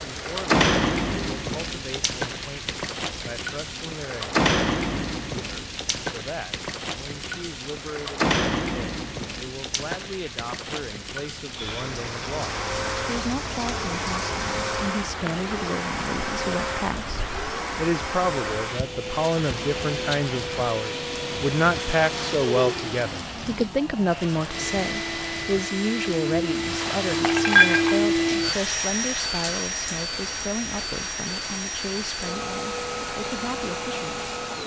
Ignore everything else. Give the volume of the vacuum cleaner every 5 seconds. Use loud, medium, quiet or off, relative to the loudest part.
off, off, medium, medium, medium, loud, medium.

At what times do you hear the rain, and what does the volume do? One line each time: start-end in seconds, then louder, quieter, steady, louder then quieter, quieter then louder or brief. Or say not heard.
0.0-34.6 quieter.